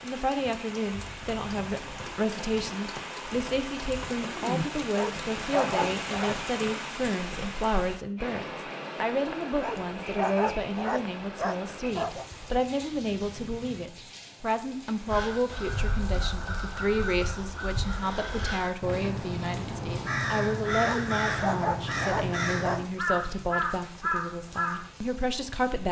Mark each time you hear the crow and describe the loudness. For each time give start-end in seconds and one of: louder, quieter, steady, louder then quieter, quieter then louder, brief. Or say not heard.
15.1-24.9 louder.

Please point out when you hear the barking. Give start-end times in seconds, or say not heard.
5.0-6.3, 9.6-12.2, 20.8-22.9.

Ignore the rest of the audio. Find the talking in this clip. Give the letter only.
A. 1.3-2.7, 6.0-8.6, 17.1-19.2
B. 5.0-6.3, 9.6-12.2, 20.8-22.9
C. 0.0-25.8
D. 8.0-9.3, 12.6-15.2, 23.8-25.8
C.